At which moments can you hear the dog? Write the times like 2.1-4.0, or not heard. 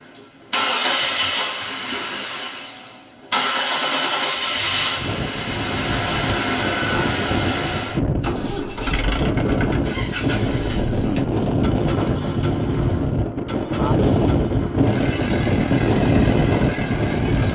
not heard.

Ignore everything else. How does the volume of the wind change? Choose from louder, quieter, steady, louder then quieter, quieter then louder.
louder.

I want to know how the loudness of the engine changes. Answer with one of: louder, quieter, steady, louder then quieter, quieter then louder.
quieter.